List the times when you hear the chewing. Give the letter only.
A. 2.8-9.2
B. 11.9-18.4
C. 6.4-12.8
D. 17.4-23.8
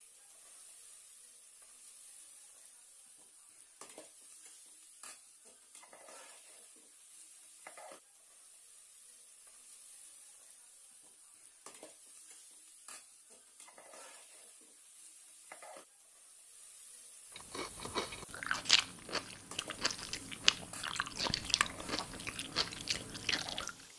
D.